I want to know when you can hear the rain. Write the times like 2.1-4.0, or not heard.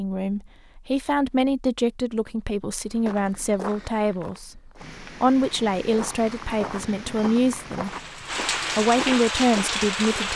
4.8-10.3.